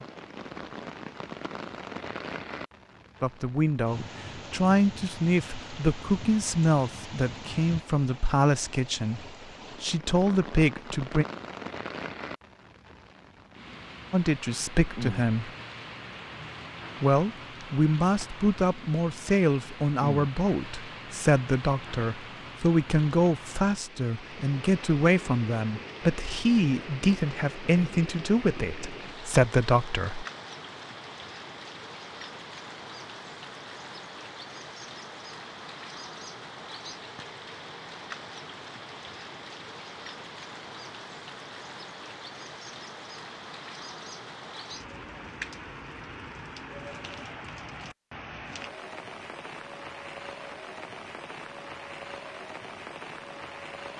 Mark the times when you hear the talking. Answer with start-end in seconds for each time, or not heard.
3.2-11.2, 14.1-15.5, 17.0-30.2.